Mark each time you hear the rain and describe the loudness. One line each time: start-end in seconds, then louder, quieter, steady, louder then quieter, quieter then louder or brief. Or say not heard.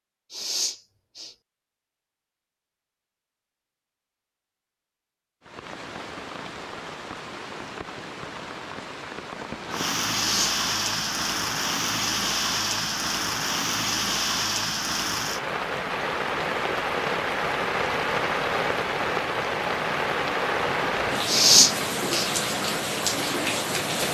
5.4-24.0 louder.